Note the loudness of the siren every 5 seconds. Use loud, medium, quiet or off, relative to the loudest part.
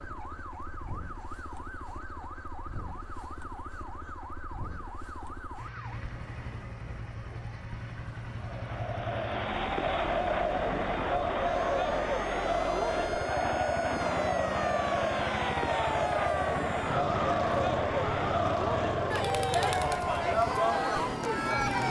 medium, quiet, medium, loud, loud.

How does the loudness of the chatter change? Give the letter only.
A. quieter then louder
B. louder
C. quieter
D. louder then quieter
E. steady
E.